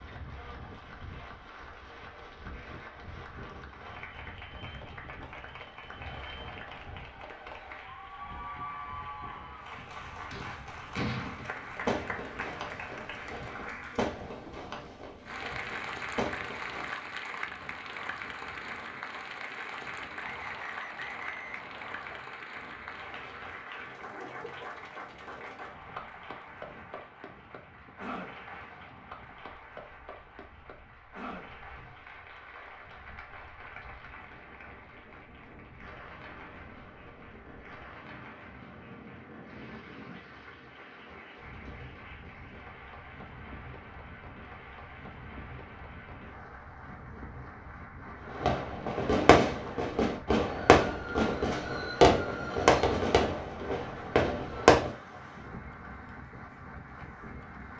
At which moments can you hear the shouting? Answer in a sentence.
The shouting can't be heard in this clip.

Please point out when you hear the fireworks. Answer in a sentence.
The fireworks can be heard from 10.3 to 16.9 s and from 48.3 to 54.9 s.